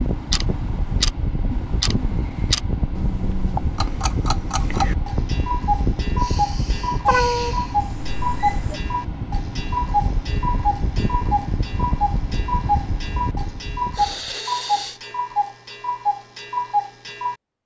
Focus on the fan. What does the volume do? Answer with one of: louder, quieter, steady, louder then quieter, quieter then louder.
steady.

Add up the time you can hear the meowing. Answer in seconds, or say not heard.
2 s.